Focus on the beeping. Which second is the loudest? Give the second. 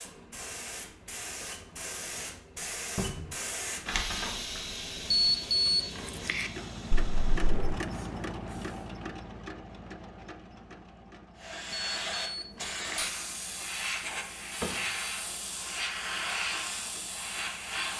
6 s.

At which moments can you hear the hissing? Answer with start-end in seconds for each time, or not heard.
0.0-8.9, 11.3-17.9.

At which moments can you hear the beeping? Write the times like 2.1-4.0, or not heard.
5.2-6.5, 11.7-13.1.